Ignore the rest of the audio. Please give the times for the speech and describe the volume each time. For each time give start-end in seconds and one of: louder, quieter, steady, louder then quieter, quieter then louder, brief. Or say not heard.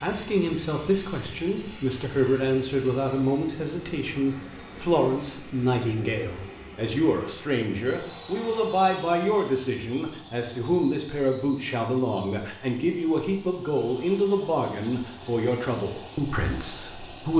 0.0-17.3 steady.